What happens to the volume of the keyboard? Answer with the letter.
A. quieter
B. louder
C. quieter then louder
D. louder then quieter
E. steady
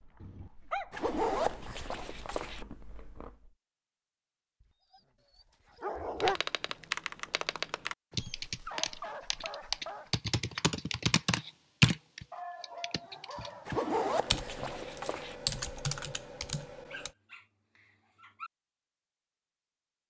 D.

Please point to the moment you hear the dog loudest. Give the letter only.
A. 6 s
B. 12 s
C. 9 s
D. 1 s
A.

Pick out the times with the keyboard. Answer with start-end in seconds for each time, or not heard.
6.2-17.1.